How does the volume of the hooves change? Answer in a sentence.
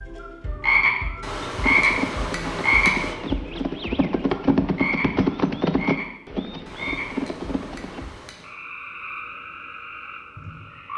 The volume of the hooves goes up, then down.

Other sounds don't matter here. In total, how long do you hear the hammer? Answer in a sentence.
You can hear the hammer for 4 seconds altogether.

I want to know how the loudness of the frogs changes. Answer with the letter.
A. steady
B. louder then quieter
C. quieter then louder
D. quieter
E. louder
D.